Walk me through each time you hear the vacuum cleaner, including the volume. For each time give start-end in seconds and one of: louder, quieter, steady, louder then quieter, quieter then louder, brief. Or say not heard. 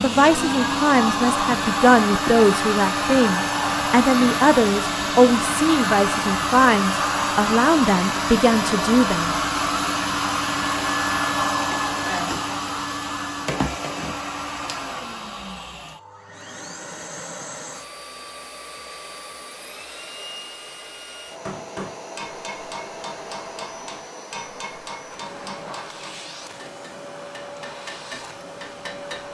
0.0-29.2 quieter.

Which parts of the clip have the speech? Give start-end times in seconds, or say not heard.
0.0-9.4.